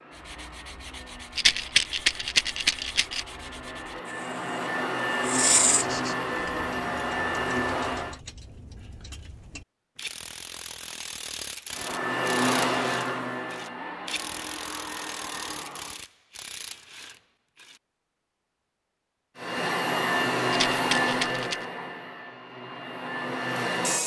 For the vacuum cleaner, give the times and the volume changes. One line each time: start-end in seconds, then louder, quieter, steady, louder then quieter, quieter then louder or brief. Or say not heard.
0.0-8.2 louder
11.7-16.1 quieter
19.4-24.0 quieter then louder.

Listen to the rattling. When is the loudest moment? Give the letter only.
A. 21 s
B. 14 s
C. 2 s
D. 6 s
C.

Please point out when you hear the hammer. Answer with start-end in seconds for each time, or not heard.
not heard.